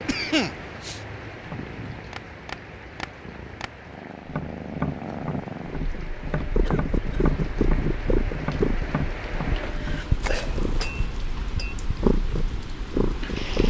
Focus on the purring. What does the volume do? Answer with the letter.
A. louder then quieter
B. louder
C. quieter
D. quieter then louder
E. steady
B.